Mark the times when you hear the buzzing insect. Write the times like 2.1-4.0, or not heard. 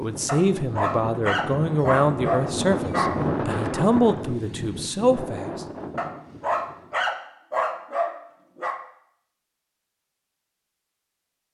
not heard.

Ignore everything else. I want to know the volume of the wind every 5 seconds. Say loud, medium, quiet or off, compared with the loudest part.
loud, medium, off.